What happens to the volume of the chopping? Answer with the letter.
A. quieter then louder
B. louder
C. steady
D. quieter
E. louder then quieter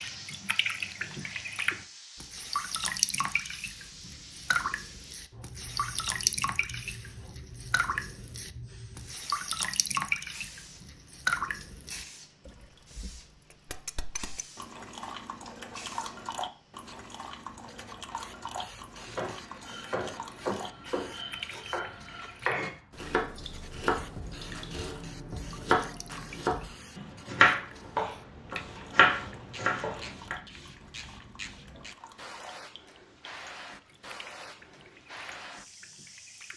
B.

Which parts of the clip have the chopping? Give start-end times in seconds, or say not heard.
19.1-30.4.